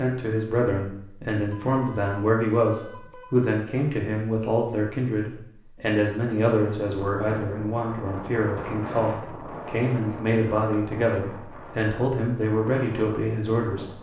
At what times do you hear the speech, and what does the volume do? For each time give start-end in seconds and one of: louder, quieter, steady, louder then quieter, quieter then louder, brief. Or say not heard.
0.0-13.8 steady.